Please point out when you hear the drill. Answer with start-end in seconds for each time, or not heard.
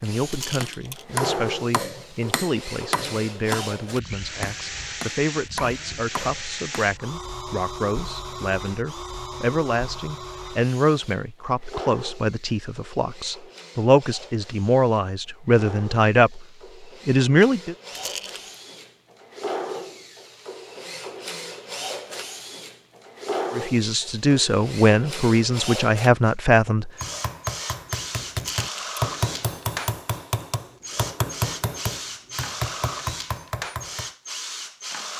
0.0-35.1.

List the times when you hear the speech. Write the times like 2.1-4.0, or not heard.
0.0-16.4, 17.1-17.8, 23.5-26.9.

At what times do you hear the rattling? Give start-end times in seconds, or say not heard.
0.3-1.1, 17.9-18.6, 28.4-29.1.